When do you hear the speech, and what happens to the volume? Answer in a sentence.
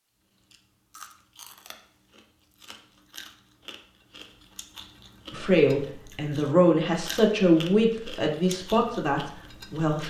The speech can be heard from 5.3 to 10.0 s, getting louder then quieter.